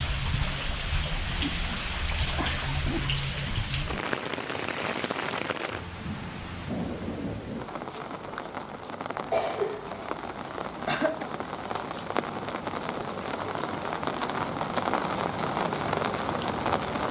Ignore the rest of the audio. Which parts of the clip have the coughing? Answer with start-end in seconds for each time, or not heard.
1.4-3.1, 9.2-11.2.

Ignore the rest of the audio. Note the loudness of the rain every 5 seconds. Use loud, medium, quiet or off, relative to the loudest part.
loud, medium, loud, loud.